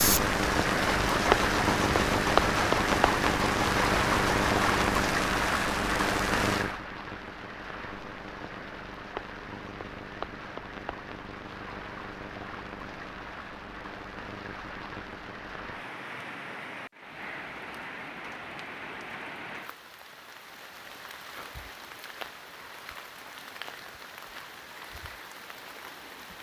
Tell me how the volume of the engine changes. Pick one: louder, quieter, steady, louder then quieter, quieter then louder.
steady.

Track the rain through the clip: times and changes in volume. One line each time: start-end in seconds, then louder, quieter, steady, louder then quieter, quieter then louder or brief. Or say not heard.
0.0-26.3 quieter.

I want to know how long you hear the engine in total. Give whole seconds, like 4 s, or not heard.
5 s.